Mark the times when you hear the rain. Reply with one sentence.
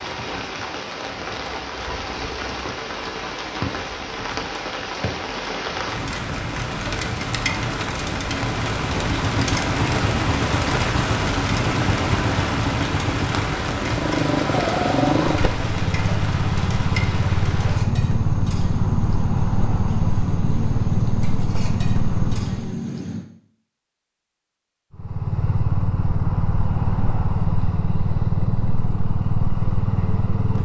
The rain can be heard from 0.0 to 23.2 s.